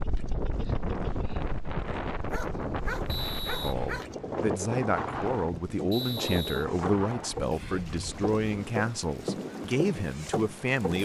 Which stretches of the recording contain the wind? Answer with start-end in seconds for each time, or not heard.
0.0-11.0.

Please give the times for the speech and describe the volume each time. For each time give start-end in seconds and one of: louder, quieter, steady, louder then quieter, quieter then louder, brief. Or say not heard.
3.6-11.0 steady.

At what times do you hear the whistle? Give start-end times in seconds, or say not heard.
3.0-3.8, 5.9-6.7.